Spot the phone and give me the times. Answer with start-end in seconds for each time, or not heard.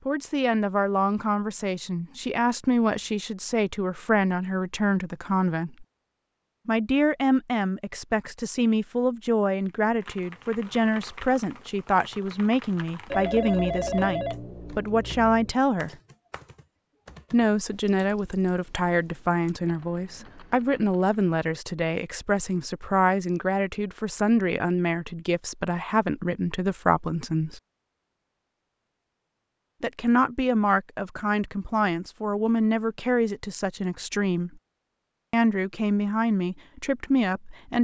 13.1-15.6.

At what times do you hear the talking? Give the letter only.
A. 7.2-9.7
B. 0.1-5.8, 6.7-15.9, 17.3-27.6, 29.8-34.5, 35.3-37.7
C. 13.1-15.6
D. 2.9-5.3
B.